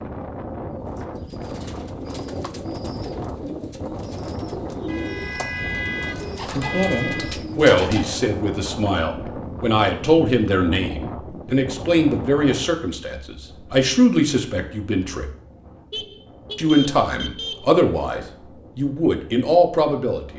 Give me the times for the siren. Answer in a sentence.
You can't hear the siren here.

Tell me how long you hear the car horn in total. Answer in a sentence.
You can hear the car horn for 4 seconds altogether.